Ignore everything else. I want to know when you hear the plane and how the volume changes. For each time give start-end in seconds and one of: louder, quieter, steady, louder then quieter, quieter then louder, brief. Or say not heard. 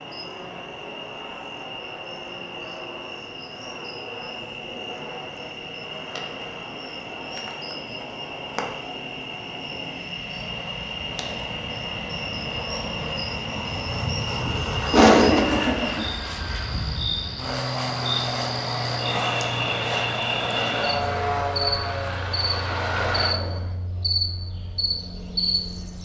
0.0-23.8 louder.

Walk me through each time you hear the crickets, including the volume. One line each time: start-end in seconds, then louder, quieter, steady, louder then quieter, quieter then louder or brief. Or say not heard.
0.0-26.0 louder.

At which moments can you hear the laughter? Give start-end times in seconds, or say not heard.
14.9-16.1.